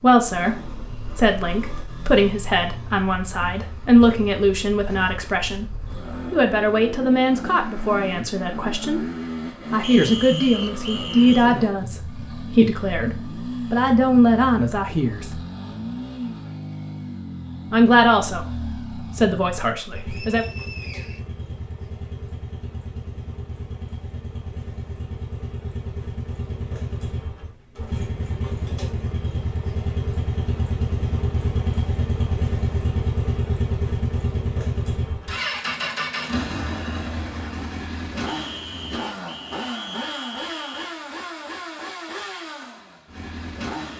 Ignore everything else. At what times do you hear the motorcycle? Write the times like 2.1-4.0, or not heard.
0.0-43.9.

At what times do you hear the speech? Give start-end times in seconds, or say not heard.
0.0-9.1, 9.7-15.4, 17.7-20.4.